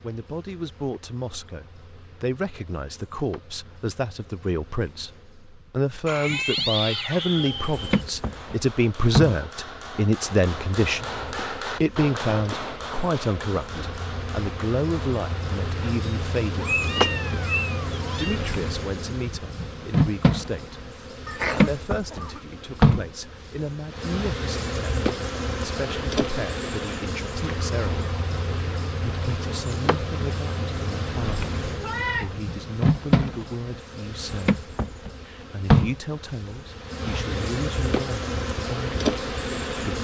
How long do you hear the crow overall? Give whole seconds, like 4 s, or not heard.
not heard.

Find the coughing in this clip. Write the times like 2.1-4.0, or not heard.
21.2-22.4.